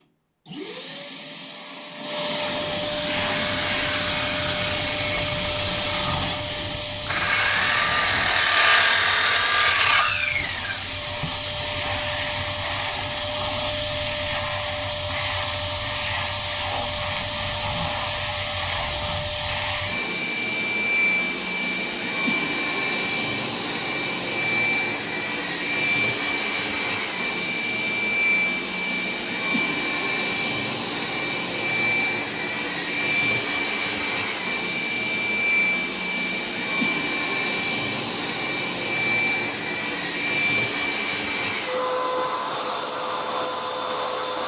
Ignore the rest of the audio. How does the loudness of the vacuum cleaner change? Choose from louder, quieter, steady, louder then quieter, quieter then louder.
steady.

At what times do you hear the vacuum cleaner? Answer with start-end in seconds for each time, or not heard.
0.5-44.4.